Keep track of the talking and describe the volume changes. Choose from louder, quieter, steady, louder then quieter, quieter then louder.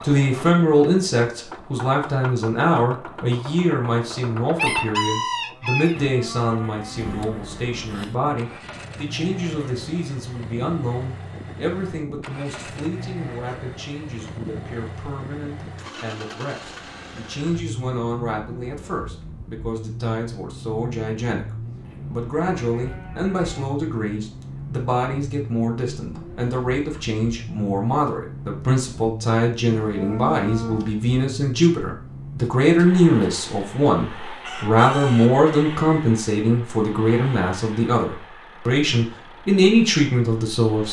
quieter then louder.